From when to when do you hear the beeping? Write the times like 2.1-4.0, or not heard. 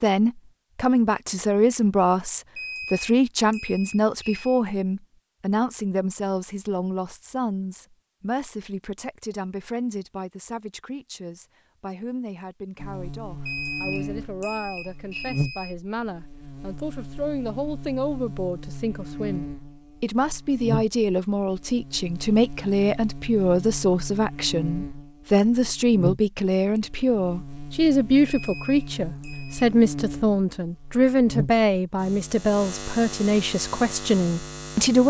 2.5-4.6, 13.4-15.8, 28.2-29.6.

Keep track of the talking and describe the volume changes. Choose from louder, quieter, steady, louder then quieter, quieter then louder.
quieter then louder.